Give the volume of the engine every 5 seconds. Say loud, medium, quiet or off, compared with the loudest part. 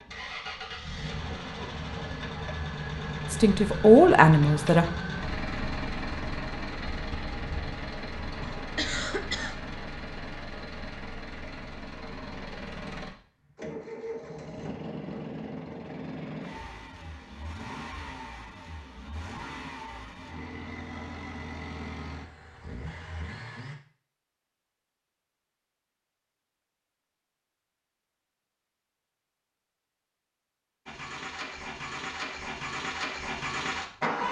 loud, loud, medium, medium, medium, off, loud.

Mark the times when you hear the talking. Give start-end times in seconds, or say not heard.
3.3-4.8.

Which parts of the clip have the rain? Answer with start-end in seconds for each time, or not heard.
not heard.